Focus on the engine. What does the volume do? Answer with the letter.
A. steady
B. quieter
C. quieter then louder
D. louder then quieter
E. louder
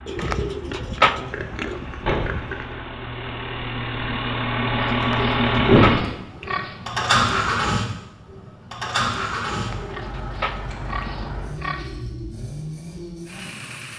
D.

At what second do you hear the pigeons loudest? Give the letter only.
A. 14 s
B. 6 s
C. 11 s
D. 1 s
D.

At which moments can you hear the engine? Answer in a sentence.
You can hear the engine from 0.0 to 13.9 s.